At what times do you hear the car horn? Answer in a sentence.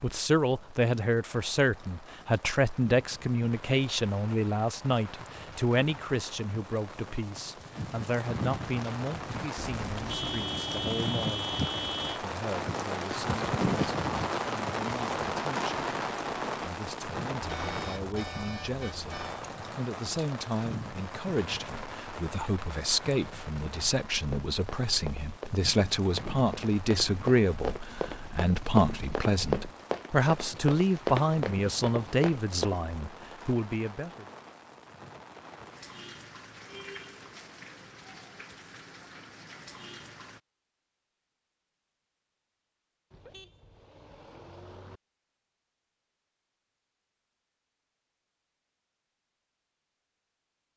The car horn can be heard from 9.6 to 12.2 s, from 17.4 to 19.4 s and from 43.1 to 45.0 s.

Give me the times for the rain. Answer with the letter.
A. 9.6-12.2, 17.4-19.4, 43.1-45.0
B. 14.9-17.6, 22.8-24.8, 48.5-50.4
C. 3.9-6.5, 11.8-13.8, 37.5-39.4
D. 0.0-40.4
D.